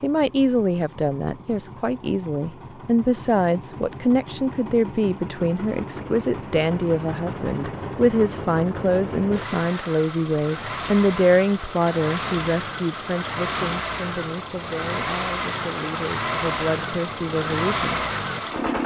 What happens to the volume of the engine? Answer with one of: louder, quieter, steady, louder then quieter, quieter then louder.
louder.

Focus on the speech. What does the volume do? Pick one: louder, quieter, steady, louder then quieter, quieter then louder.
quieter.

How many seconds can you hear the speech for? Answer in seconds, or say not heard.
18 s.